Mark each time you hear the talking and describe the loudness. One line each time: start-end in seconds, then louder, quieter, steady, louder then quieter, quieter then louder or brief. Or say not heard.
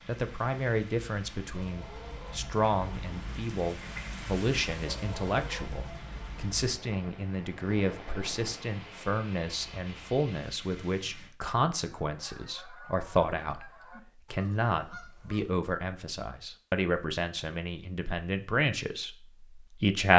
0.1-20.1 steady.